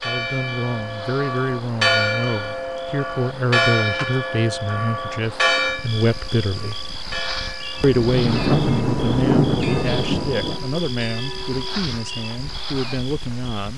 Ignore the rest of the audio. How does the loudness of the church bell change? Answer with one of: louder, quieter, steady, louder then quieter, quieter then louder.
quieter.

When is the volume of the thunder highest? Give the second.
9 s.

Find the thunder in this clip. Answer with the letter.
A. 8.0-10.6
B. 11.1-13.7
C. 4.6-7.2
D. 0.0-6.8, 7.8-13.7
A.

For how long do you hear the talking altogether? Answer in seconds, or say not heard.
13 s.